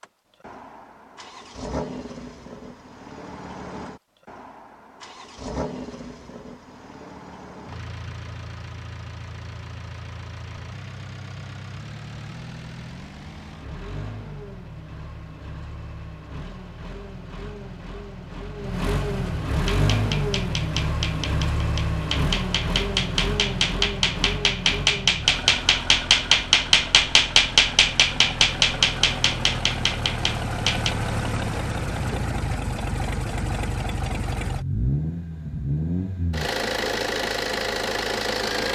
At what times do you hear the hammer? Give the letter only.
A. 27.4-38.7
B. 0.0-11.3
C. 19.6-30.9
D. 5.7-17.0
C.